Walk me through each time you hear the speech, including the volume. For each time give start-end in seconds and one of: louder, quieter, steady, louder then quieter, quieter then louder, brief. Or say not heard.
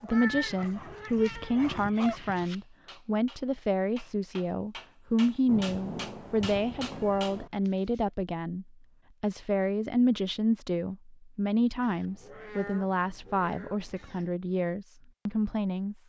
0.0-15.9 steady.